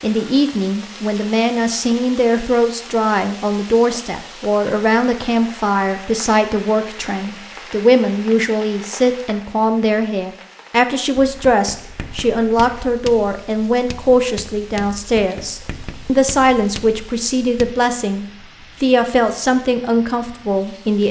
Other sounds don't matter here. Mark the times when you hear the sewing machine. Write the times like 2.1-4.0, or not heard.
not heard.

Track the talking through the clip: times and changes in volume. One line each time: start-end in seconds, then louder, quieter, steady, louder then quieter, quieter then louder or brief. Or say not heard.
0.0-21.0 steady.